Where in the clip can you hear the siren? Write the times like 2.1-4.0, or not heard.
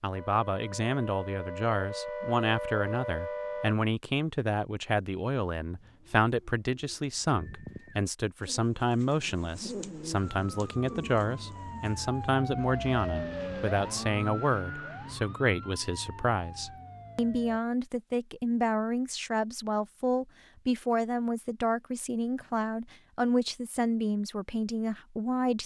0.0-3.8, 10.3-17.6.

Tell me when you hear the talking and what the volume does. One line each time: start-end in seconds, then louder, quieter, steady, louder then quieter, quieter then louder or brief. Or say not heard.
0.0-25.6 steady.